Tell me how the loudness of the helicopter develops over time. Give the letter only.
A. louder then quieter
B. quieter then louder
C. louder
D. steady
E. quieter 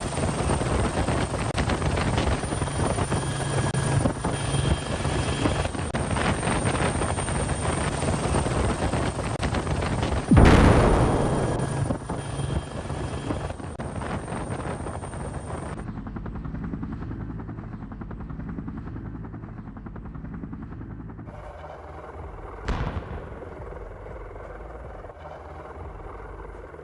E.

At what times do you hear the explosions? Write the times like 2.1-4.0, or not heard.
10.3-11.7, 22.6-23.8.